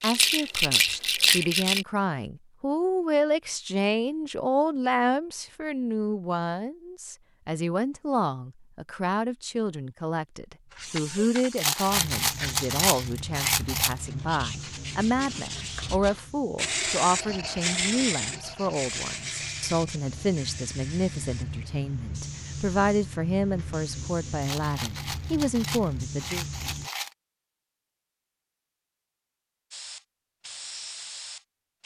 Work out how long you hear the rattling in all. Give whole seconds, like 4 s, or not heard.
7 s.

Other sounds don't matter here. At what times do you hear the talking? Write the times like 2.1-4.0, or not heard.
0.0-26.4.